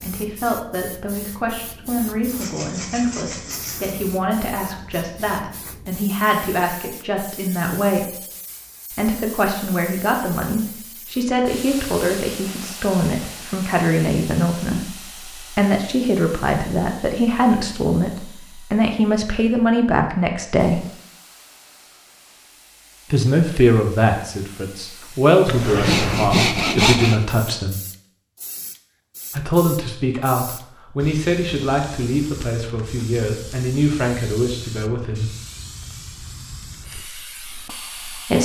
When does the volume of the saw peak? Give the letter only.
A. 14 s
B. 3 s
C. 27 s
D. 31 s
C.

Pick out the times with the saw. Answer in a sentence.
The saw can be heard from 2.3 to 4.0 s and from 25.4 to 27.2 s.